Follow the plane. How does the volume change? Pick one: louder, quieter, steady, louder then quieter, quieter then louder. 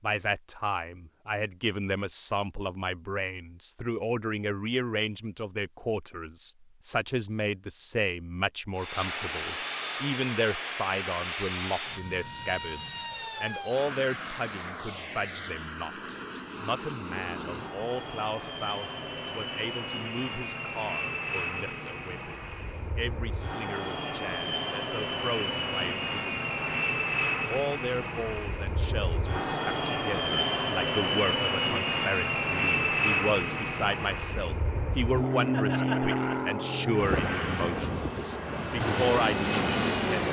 louder.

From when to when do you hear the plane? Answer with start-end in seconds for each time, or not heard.
8.8-40.2.